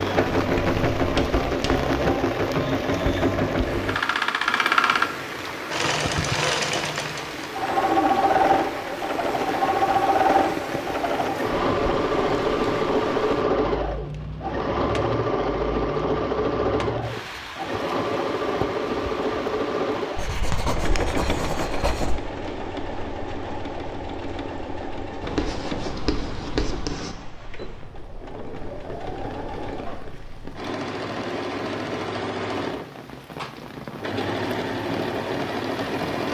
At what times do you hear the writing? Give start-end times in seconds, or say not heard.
0.3-1.9, 20.1-22.2, 25.2-27.1.